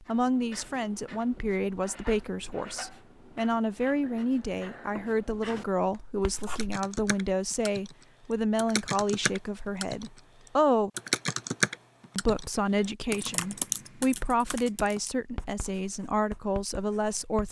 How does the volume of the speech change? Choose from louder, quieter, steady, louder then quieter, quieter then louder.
steady.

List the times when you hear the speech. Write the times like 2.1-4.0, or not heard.
0.0-10.9, 12.2-17.4.